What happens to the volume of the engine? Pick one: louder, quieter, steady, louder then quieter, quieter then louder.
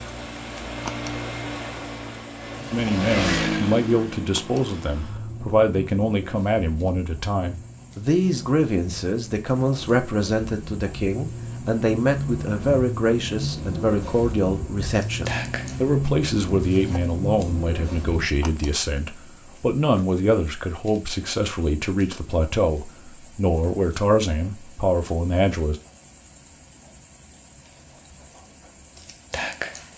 quieter then louder.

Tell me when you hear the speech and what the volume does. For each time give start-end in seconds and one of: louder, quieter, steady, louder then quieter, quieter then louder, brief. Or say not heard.
2.7-25.8 steady.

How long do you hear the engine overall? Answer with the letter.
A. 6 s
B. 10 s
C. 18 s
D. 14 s
C.